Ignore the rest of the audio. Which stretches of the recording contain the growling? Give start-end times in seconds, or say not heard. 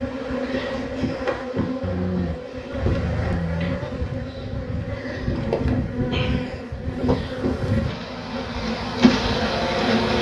1.8-3.8.